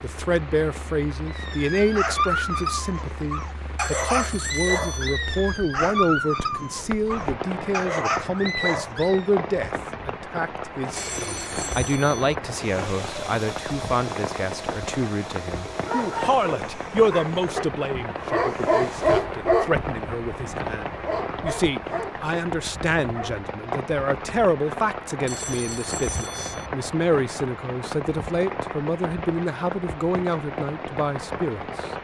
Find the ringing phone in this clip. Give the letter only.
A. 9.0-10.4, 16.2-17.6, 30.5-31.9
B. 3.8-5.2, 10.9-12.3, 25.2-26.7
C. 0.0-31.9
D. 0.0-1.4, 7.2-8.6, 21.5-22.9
B.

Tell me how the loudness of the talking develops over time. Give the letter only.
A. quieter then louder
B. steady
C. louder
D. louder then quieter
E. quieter
B.